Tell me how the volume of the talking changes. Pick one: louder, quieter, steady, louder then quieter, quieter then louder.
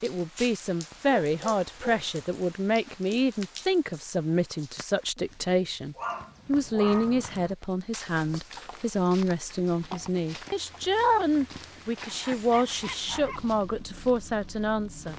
steady.